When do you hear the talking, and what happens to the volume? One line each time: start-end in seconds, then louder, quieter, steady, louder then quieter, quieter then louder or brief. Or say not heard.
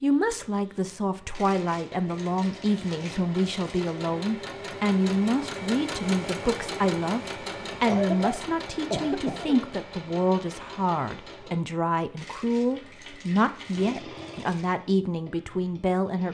0.0-16.2 steady.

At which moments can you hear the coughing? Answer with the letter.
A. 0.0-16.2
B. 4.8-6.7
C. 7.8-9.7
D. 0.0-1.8
C.